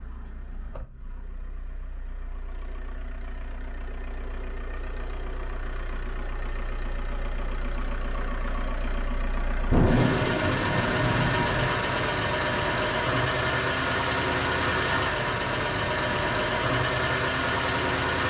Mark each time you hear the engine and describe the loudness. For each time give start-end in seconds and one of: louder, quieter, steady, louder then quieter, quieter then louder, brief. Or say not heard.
0.0-18.2 louder.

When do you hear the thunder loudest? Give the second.
10 s.